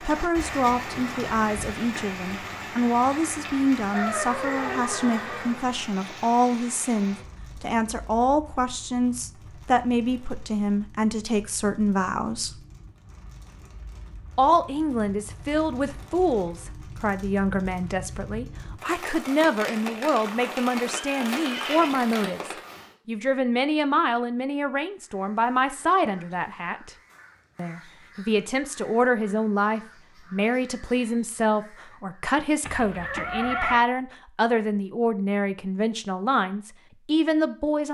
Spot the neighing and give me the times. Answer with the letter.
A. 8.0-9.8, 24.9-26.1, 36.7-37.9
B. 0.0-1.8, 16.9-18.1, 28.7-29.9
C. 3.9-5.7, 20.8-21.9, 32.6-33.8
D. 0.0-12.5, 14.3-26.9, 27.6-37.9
C.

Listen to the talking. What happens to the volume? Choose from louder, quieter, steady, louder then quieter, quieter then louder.
steady.